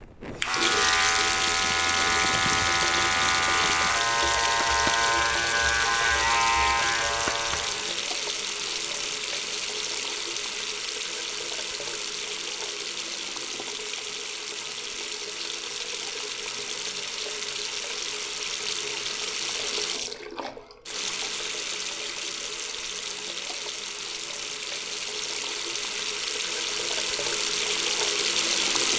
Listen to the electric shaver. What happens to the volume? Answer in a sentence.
The loudness of the electric shaver stays about the same.